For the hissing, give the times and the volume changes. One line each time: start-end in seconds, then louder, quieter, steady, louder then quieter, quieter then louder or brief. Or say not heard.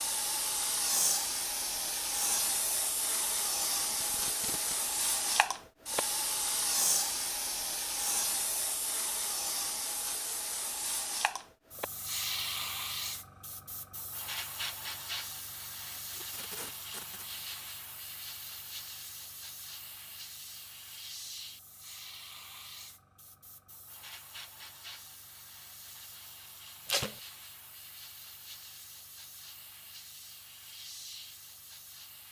0.0-32.2 quieter.